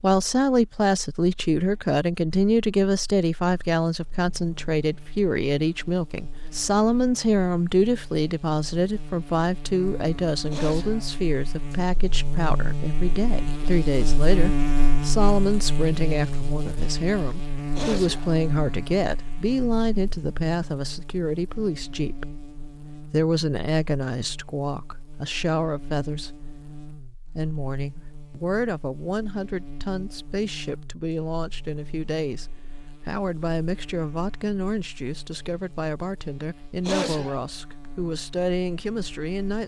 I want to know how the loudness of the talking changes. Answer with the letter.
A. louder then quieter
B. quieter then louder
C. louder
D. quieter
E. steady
D.